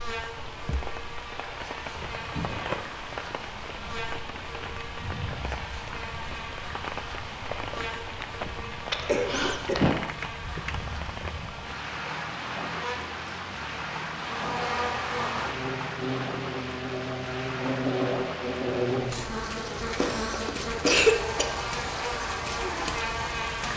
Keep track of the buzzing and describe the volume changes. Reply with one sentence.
The volume of the buzzing goes up.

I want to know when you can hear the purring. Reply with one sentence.
You can't hear the purring here.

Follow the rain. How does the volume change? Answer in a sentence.
The volume of the rain stays about the same.